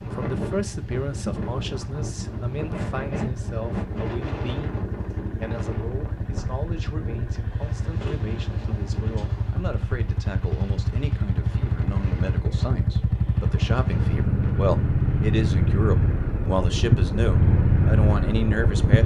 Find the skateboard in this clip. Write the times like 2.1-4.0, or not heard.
not heard.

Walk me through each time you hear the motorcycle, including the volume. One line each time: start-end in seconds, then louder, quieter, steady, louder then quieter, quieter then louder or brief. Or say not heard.
0.0-19.0 louder.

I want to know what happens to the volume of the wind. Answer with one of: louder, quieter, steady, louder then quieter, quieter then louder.
quieter.